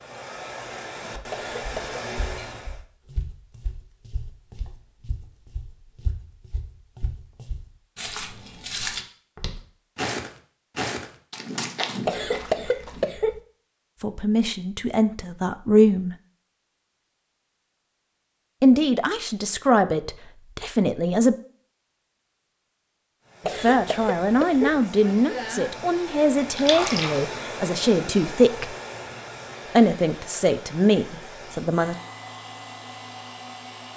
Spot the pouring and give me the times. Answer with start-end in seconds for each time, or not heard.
26.5-27.2.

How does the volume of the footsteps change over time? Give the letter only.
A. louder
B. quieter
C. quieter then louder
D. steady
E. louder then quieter
A.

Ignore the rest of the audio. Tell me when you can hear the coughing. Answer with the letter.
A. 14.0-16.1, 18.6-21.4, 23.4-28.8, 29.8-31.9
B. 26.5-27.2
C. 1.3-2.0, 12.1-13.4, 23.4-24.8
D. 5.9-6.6
C.